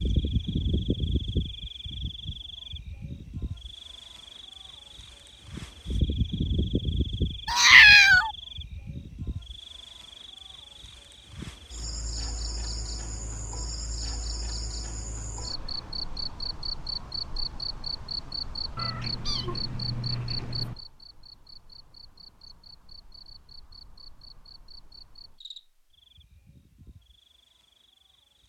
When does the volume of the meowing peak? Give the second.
8 s.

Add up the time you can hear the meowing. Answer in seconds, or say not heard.
3 s.